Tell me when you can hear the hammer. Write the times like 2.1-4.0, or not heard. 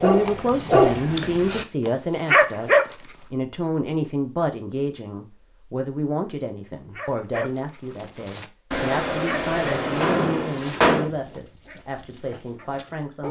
8.7-11.1.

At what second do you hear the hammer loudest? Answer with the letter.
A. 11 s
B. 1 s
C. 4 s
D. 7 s
A.